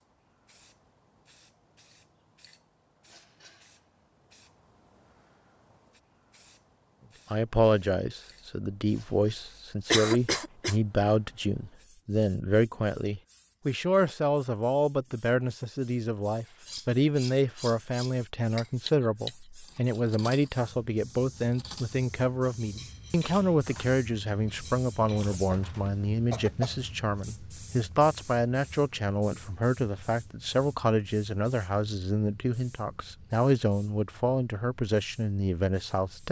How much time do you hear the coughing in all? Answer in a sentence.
The coughing can be heard for 2 seconds in total.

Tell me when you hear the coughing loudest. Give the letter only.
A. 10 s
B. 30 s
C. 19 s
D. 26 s
A.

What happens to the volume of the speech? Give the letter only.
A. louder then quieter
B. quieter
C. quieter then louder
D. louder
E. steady
E.